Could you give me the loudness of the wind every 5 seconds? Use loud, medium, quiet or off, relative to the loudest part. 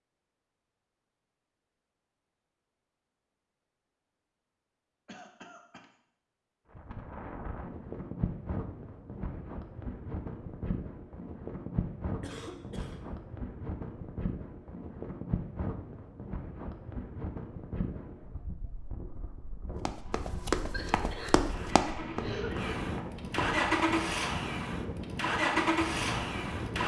off, loud, loud, loud, loud, loud.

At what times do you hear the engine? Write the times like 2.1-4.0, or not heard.
20.0-26.8.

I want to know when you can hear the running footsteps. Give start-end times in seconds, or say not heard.
19.9-23.6.